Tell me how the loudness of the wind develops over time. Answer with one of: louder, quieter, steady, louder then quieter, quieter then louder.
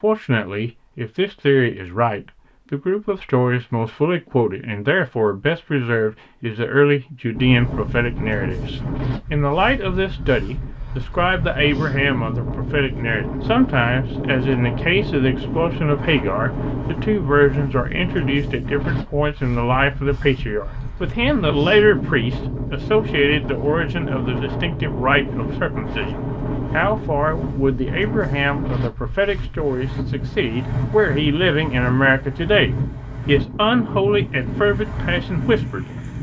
steady.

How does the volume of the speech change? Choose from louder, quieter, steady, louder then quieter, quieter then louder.
steady.